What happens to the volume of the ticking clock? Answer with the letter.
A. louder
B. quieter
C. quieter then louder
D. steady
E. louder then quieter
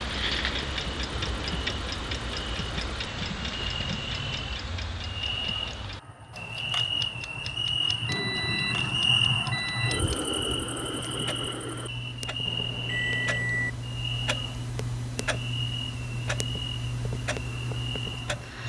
C.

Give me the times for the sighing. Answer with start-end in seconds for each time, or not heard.
not heard.